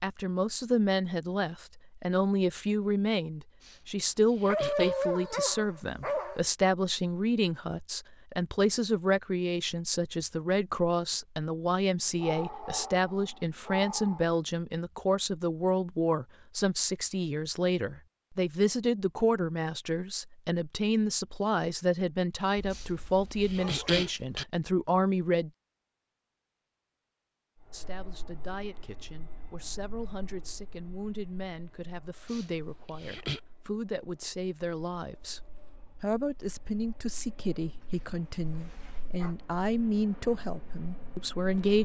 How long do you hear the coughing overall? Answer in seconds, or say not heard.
4 s.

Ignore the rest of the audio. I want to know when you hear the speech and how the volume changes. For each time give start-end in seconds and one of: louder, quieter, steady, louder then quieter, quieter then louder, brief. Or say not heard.
0.0-25.5 steady
27.7-41.7 louder.